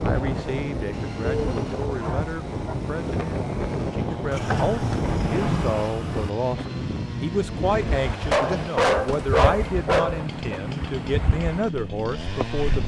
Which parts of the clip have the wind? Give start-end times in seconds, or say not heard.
0.0-12.8.